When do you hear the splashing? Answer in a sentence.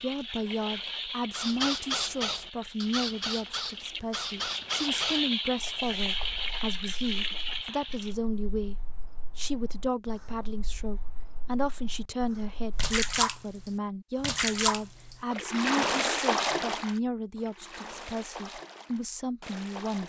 The splashing can be heard from 0.0 to 8.2 s and from 12.8 to 20.0 s.